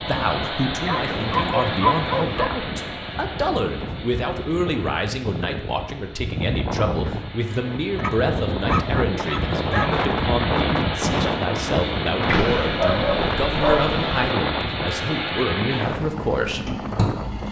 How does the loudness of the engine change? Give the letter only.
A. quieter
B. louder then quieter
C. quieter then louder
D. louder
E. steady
C.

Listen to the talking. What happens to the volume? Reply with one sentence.
The loudness of the talking stays about the same.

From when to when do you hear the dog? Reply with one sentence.
The dog can be heard from 0.8 to 2.5 s, from 7.0 to 9.9 s and from 12.2 to 14.3 s.